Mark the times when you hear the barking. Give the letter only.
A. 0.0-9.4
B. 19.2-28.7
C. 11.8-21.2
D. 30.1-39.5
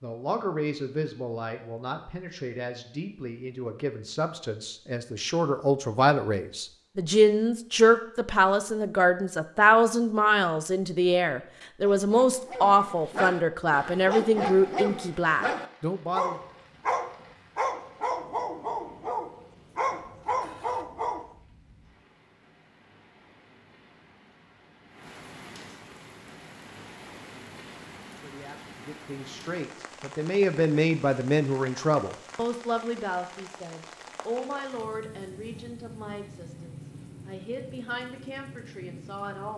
C.